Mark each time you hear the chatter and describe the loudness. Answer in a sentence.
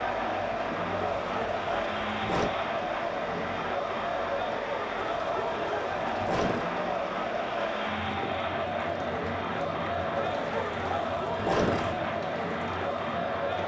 The chatter can be heard from 0.0 to 13.6 s, at a steady volume.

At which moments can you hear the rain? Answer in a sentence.
The rain can be heard from 0.0 to 13.6 s.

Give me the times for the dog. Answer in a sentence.
The dog can be heard from 0.9 to 2.5 s, from 5.0 to 6.7 s and from 10.1 to 11.9 s.